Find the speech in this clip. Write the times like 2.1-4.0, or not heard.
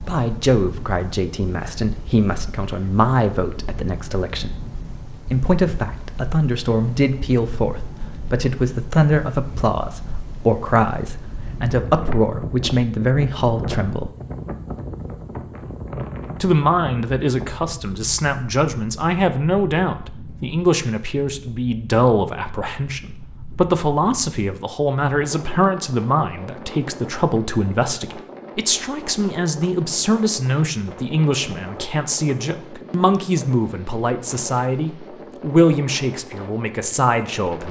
0.0-4.5, 5.3-14.1, 16.4-37.6.